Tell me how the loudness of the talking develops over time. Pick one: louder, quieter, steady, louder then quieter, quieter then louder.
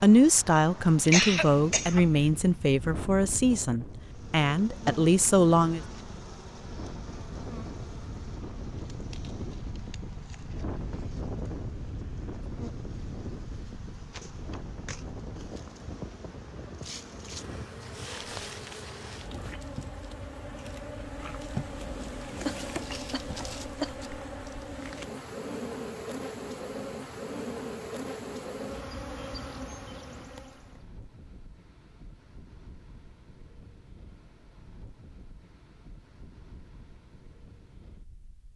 steady.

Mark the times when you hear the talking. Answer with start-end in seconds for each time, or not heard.
0.0-5.8.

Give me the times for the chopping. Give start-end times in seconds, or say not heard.
not heard.